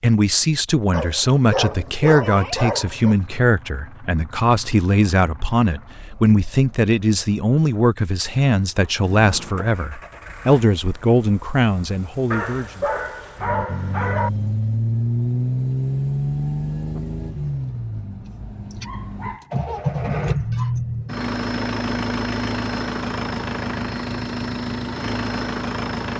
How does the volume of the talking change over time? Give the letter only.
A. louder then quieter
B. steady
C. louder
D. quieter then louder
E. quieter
B.